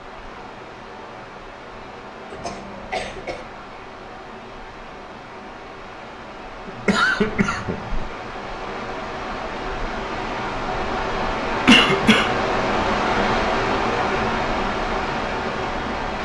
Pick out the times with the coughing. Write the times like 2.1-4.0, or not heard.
2.3-3.4, 6.7-8.1, 11.7-12.3.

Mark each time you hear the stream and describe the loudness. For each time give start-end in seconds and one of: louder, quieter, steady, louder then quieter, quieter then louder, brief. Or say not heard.
0.0-16.2 louder.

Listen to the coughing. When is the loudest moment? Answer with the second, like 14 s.
12 s.